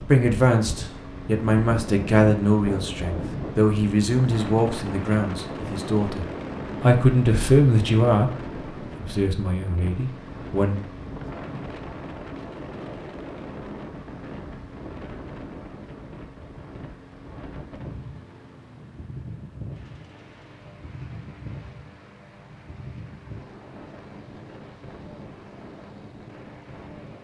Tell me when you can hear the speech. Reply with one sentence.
You can hear the speech from 0.1 to 8.3 s and from 8.9 to 10.8 s.